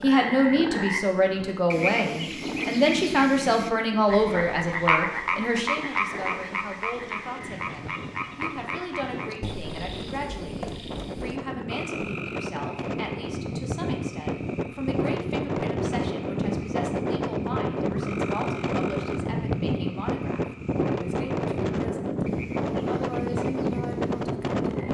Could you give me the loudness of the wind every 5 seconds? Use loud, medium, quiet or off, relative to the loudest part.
quiet, quiet, medium, loud, loud.